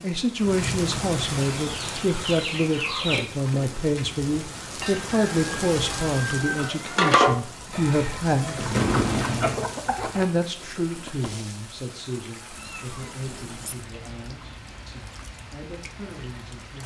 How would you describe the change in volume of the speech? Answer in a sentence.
The volume of the speech goes down.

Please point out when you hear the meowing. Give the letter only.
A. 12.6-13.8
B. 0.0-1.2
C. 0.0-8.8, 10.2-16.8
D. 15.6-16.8
A.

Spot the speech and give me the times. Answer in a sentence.
You can hear the speech from 0.0 to 8.8 s and from 10.2 to 16.8 s.